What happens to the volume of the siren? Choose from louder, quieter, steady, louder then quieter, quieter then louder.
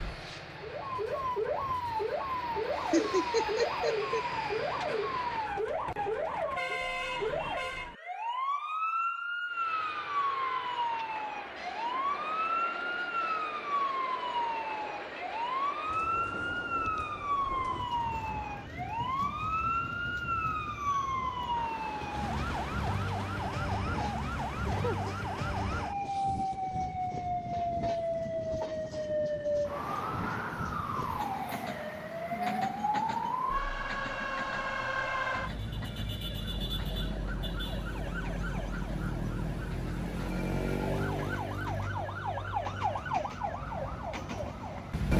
steady.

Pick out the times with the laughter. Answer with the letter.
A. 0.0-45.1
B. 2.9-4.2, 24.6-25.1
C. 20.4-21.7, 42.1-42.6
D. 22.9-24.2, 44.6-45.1
B.